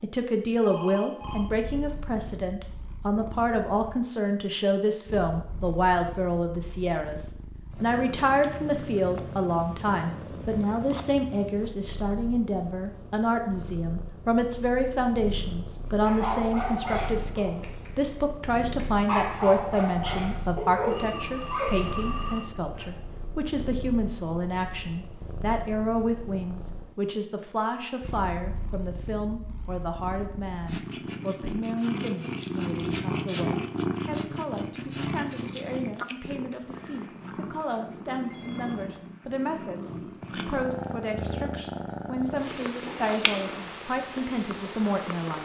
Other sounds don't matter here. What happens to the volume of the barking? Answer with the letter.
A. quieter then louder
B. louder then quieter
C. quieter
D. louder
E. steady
A.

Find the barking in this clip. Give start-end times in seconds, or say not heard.
16.1-21.9.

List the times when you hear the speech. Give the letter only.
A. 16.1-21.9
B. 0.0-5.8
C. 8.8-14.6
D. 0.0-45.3
D.